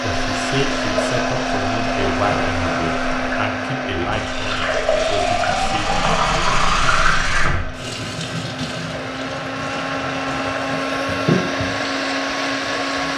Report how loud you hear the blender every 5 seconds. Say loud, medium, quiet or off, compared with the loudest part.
loud, medium, loud.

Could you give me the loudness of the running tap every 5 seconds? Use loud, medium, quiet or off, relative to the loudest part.
medium, loud, medium.